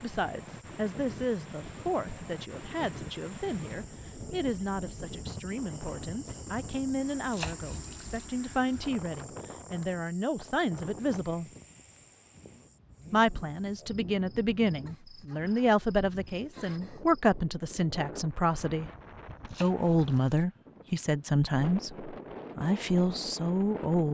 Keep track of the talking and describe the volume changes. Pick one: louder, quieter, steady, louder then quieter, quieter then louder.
louder.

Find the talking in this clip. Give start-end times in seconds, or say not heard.
0.0-11.5, 13.1-18.9, 19.6-24.1.